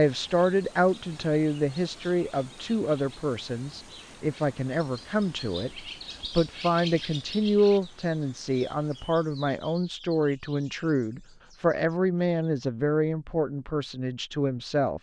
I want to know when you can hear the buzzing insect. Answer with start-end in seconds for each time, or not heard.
not heard.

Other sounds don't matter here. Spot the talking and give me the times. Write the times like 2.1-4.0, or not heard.
0.0-14.9.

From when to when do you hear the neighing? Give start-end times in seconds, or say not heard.
not heard.